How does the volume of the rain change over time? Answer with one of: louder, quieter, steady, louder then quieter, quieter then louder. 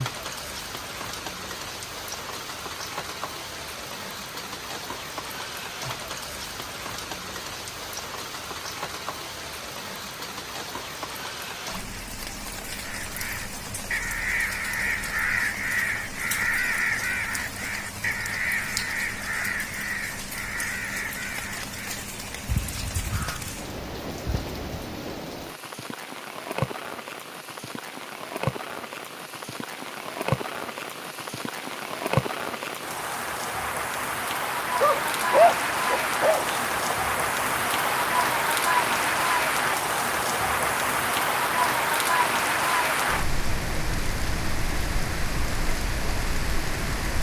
louder.